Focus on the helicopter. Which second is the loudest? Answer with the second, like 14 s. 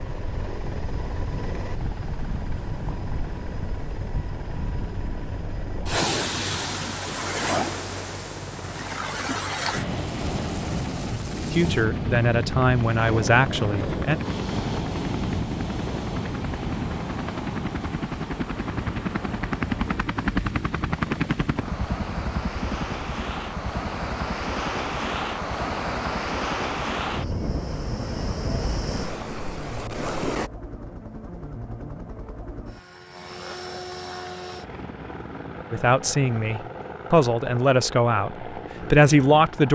21 s.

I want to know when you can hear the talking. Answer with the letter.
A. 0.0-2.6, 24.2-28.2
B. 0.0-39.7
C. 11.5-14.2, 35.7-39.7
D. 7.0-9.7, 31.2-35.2
C.